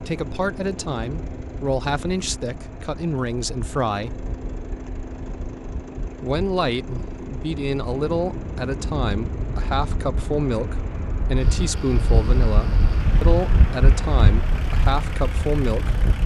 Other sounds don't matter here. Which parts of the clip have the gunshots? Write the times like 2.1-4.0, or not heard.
not heard.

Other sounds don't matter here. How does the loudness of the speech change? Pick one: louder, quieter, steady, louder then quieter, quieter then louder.
steady.